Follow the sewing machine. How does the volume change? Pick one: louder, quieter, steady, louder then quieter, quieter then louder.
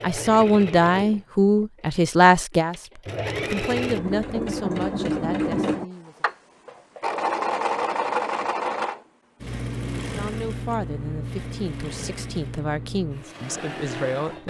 louder then quieter.